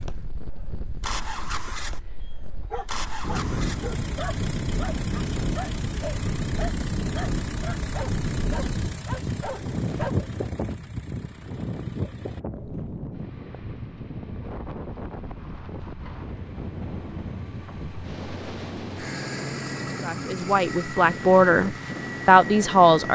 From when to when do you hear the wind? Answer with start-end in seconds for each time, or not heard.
0.0-23.1.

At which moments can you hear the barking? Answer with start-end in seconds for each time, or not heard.
2.2-10.2.